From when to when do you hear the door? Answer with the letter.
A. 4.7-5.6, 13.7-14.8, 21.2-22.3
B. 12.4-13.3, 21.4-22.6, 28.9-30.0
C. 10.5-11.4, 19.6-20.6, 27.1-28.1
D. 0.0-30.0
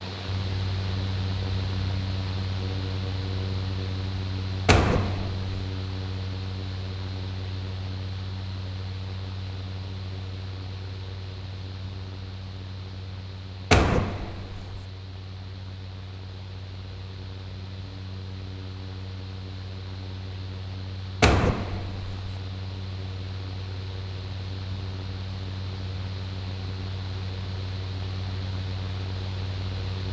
A.